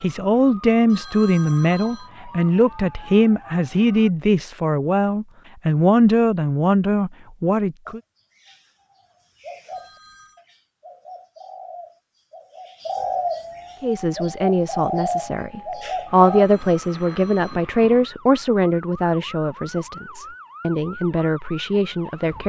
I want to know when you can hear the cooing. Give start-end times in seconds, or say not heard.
7.8-16.4.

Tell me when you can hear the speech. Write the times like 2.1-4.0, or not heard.
0.0-8.0, 13.8-22.4.